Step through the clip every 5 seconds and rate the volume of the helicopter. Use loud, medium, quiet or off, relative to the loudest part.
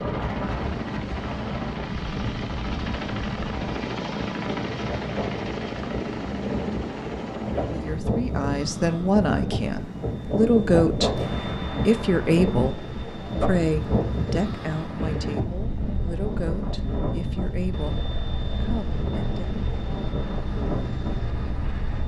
loud, loud, medium, medium, medium.